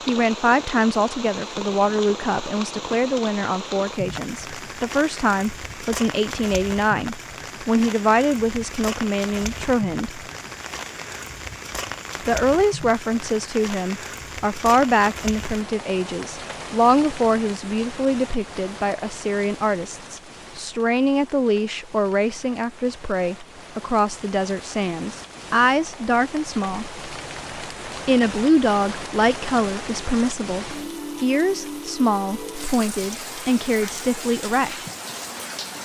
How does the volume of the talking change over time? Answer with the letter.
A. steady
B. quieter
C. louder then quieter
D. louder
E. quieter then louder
A.